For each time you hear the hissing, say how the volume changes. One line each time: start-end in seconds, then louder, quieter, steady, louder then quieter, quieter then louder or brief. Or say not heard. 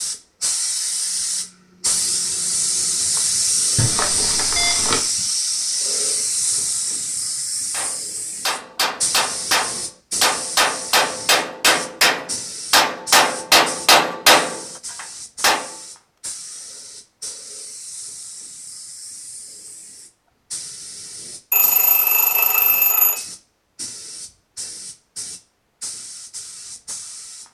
0.0-27.4 quieter.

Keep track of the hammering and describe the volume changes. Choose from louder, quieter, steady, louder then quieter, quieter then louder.
louder.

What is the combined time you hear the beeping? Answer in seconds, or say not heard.
3 s.